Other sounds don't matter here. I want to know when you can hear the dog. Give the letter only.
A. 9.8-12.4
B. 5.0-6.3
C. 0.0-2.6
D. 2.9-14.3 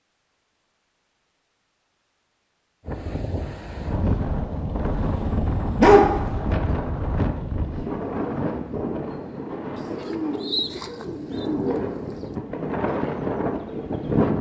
B.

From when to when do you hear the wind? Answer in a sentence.
The wind can be heard from 2.9 to 14.3 s.